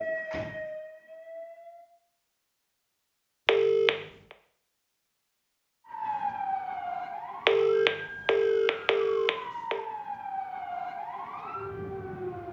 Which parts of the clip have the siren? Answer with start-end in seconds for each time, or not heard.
0.0-1.9, 5.8-12.4.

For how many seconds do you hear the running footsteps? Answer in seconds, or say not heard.
not heard.